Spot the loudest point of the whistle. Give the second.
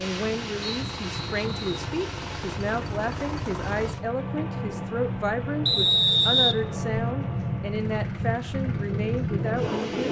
6 s.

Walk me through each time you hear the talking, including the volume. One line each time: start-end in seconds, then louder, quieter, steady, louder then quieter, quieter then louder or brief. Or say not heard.
0.0-9.8 steady.